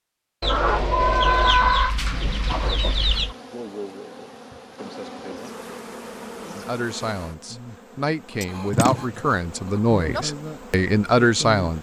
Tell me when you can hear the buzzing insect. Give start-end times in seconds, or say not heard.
2.1-11.7.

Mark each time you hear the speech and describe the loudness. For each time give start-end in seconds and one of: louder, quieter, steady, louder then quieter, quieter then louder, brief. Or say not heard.
6.5-11.7 louder.